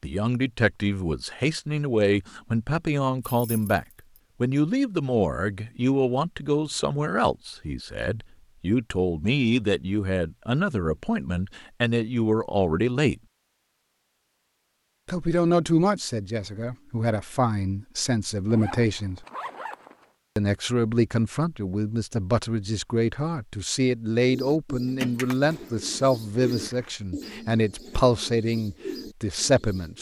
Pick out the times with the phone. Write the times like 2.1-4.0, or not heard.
not heard.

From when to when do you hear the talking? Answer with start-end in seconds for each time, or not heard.
0.0-13.2, 15.1-19.2, 20.4-29.9.